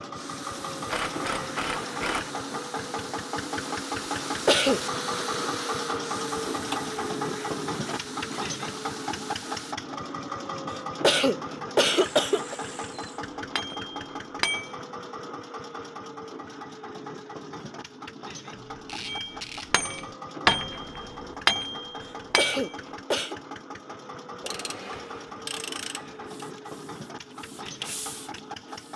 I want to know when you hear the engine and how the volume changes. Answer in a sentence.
The engine can be heard from 0.0 to 28.9 s, getting quieter.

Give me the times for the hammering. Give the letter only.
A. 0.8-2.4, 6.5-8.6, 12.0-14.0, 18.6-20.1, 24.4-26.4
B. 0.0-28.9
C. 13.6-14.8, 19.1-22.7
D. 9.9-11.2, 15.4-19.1
C.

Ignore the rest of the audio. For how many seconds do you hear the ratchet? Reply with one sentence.
You can hear the ratchet for 9 seconds altogether.